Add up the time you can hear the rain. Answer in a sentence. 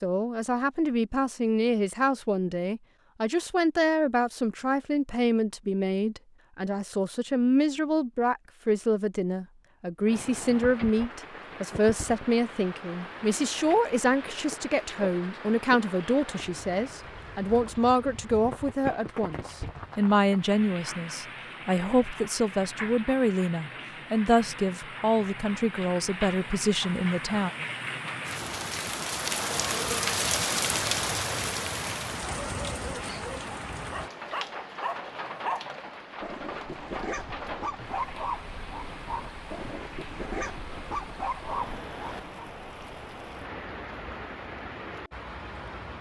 You can hear the rain for 36 seconds altogether.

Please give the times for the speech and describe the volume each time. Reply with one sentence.
The speech can be heard from 0.0 to 27.5 s, at a steady volume.